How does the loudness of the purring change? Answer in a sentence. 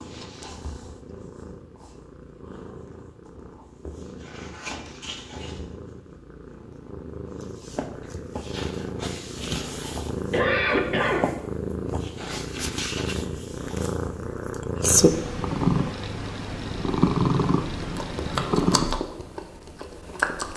The volume of the purring goes up.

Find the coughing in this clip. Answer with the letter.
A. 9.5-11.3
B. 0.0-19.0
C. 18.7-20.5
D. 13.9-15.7
A.